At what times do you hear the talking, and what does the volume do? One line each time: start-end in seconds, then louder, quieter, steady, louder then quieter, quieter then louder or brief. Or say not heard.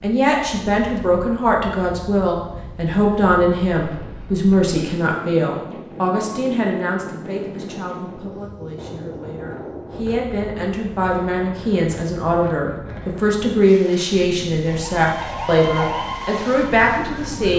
0.0-17.5 quieter then louder.